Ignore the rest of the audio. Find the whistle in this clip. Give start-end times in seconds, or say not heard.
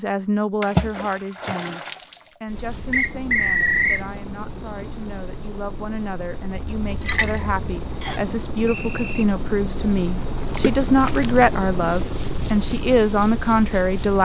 2.9-4.0, 8.0-9.2.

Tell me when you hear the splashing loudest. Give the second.
1 s.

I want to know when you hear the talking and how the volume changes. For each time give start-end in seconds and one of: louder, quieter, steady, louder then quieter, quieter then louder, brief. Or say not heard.
0.0-14.2 quieter then louder.